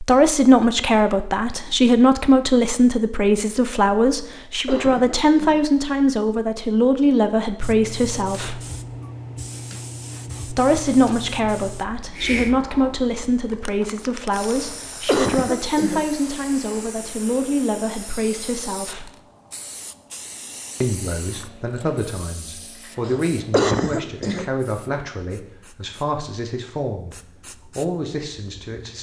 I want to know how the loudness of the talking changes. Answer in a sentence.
The loudness of the talking goes down.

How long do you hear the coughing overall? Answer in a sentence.
The coughing can be heard for 5 seconds in total.